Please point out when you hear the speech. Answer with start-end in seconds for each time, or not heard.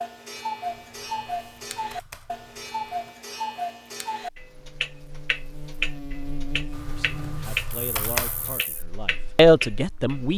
6.8-10.3.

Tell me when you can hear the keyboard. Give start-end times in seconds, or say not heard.
0.8-3.0, 6.7-8.6.